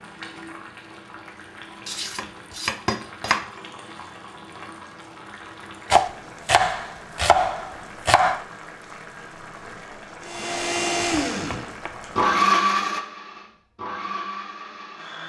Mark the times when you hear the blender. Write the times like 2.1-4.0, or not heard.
10.2-15.2.